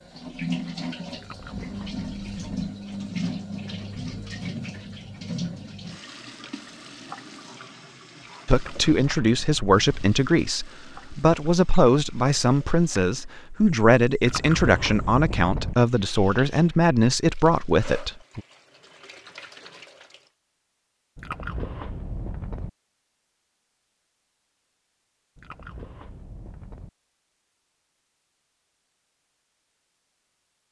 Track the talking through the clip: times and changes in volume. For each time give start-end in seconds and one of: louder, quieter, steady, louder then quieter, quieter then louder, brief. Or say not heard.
8.4-18.4 steady.